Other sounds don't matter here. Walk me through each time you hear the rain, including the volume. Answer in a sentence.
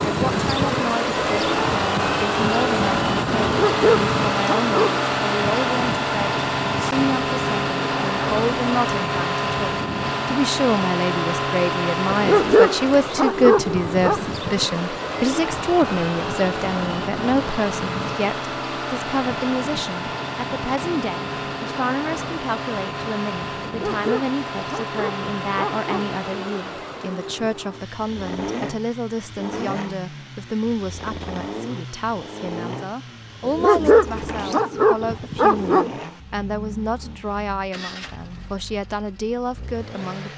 You can't hear the rain here.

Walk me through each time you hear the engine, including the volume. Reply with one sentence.
The engine can be heard from 0.0 to 40.3 s, getting quieter.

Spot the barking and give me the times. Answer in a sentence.
You can hear the barking from 3.5 to 4.9 s, from 12.1 to 14.2 s, from 23.6 to 26.2 s and from 33.5 to 35.9 s.